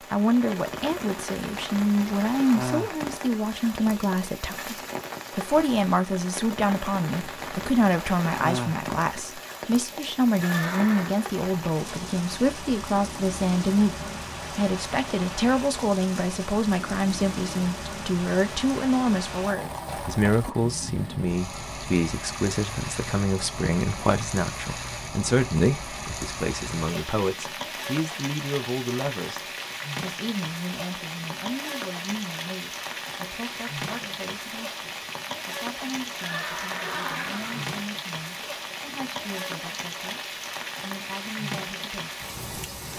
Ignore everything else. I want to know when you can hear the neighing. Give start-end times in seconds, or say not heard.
10.3-11.2, 36.1-37.8.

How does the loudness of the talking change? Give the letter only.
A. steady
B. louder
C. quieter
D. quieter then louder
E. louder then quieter
C.